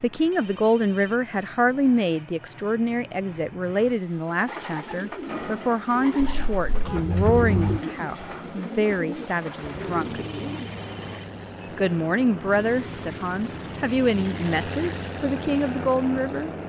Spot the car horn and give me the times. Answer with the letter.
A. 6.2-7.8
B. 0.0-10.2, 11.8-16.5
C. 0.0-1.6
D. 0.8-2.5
A.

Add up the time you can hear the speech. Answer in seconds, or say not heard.
15 s.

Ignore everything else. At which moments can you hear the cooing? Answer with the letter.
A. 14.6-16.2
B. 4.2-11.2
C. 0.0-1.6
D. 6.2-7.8
B.